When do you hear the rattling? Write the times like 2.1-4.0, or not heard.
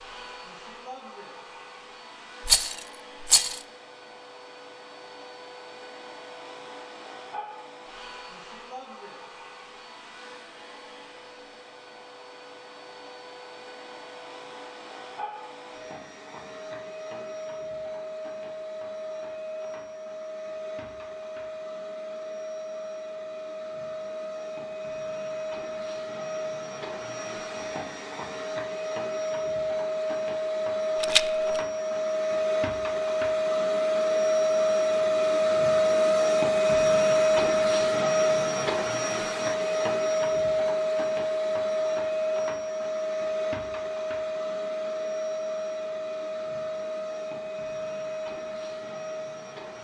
2.5-3.6, 31.0-31.6.